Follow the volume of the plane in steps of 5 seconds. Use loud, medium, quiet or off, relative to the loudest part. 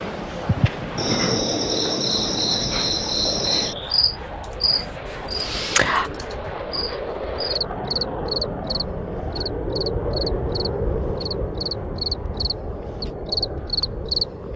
medium, loud, loud.